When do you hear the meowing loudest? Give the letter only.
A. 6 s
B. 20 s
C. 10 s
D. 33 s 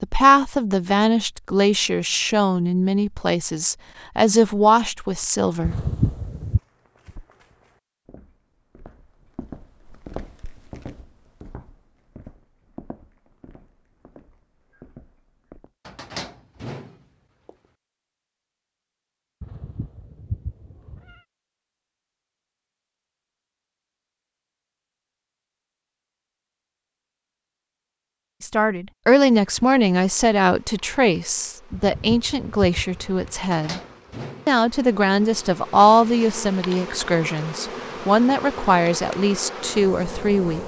A.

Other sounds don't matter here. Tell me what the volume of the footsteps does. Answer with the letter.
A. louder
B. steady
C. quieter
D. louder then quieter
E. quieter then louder
D.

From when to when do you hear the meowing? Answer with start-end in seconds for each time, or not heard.
5.6-6.6, 19.4-21.2, 31.8-33.4.